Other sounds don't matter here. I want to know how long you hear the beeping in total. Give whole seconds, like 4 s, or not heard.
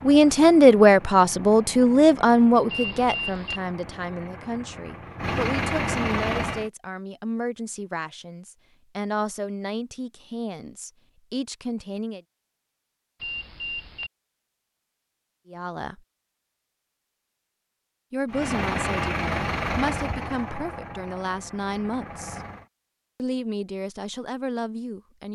2 s.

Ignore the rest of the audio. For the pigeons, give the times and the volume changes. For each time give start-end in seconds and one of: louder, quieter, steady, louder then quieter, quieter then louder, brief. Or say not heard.
not heard.